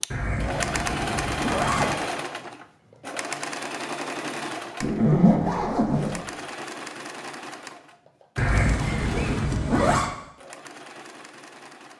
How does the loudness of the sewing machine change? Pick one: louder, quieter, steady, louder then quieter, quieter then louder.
quieter.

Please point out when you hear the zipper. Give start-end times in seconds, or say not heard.
0.1-1.9, 4.8-6.2, 8.3-10.1.